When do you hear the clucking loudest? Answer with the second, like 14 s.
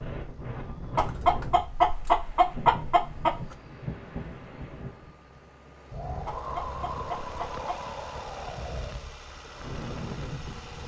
2 s.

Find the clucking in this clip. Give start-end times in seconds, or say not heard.
0.9-3.5, 6.2-7.7.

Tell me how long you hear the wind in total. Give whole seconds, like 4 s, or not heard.
11 s.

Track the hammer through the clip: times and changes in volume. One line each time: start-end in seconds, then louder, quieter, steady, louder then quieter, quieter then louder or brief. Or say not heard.
not heard.